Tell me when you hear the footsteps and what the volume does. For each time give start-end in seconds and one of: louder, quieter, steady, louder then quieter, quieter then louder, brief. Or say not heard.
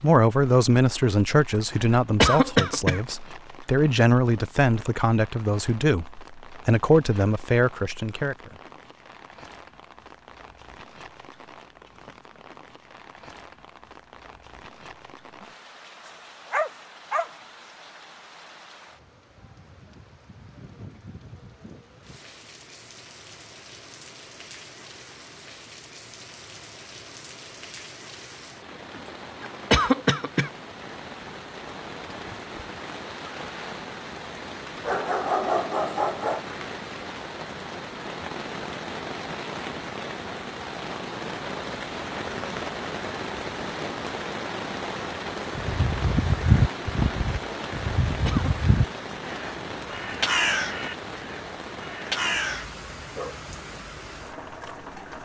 not heard.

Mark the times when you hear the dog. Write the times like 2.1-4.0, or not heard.
16.1-17.3, 34.9-36.4.